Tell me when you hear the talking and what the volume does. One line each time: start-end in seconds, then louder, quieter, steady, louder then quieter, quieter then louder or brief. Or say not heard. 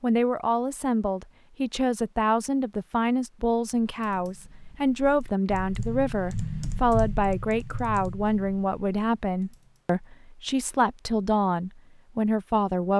0.0-12.9 steady.